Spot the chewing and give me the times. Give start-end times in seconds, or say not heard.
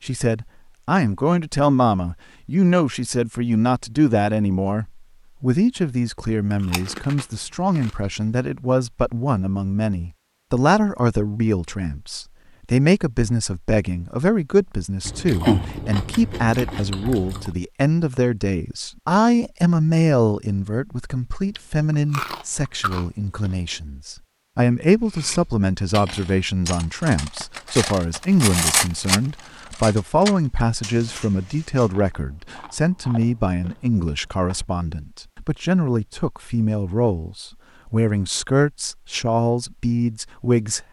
6.5-8.1, 15.1-17.5, 21.5-23.6, 31.9-34.6.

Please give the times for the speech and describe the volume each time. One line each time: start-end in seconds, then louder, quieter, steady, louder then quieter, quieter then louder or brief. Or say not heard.
0.0-40.8 steady.